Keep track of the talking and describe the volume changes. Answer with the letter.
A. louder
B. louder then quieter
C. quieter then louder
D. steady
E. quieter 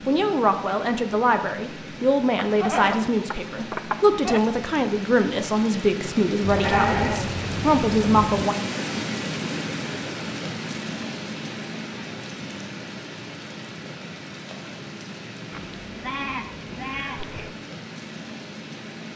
D.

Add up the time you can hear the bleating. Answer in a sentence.
The bleating can be heard for 6 seconds in total.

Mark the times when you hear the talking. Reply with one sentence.
The talking can be heard from 0.1 to 8.6 s.